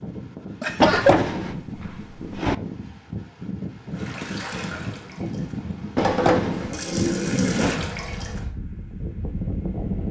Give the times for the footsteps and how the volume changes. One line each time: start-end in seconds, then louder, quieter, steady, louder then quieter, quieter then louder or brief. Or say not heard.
not heard.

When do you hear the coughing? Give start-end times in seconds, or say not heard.
0.6-1.2.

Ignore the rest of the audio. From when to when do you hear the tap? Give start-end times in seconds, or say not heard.
3.9-8.4.